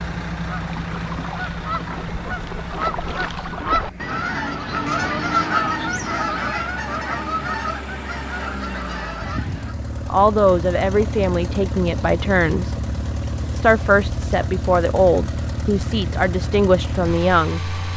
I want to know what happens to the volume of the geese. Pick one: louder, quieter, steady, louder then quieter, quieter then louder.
louder then quieter.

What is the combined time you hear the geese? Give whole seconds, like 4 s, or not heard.
9 s.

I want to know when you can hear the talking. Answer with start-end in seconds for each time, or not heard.
10.1-12.8, 13.6-17.6.